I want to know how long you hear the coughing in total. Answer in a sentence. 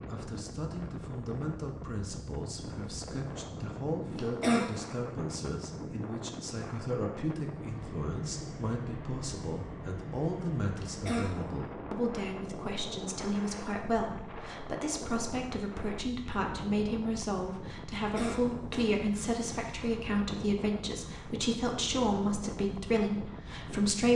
The coughing can be heard for 3 seconds in total.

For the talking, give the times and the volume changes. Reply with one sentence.
The talking can be heard from 0.0 to 24.1 s, getting louder.